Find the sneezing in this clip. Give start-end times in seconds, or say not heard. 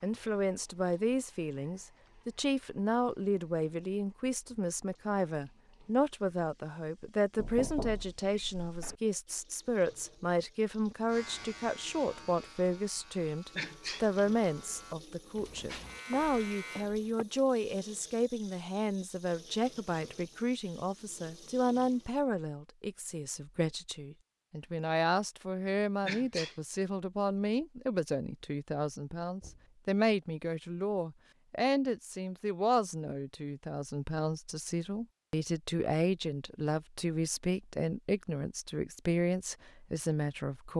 13.6-14.1, 26.1-26.6.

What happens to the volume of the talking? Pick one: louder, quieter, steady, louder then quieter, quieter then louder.
steady.